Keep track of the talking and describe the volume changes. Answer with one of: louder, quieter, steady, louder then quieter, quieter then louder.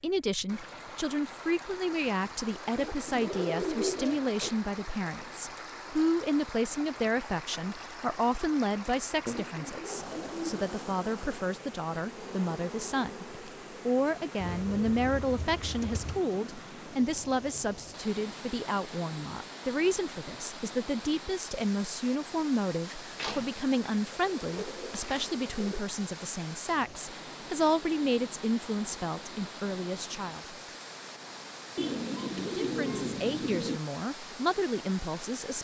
steady.